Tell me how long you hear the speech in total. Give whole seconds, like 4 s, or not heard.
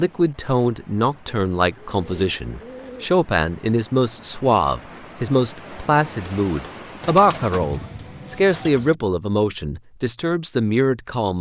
11 s.